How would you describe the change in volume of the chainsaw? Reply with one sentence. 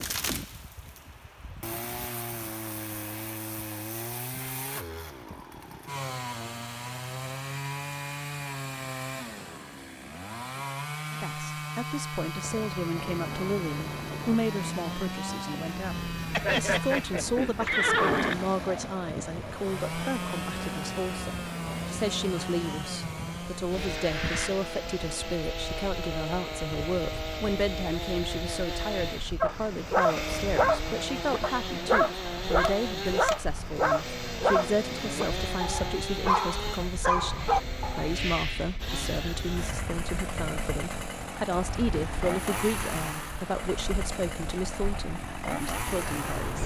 The volume of the chainsaw stays about the same.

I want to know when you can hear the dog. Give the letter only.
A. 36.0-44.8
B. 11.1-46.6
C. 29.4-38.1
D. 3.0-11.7
C.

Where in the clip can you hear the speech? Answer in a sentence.
The speech can be heard from 11.1 to 46.6 s.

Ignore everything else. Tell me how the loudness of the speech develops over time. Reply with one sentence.
The volume of the speech stays about the same.